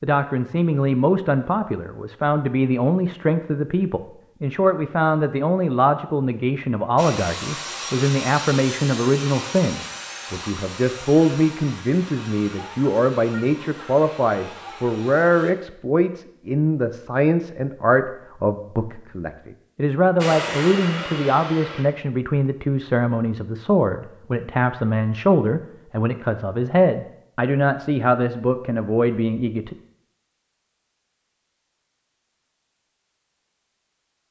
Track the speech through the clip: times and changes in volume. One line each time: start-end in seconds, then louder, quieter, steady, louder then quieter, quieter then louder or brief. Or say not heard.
0.0-29.8 steady.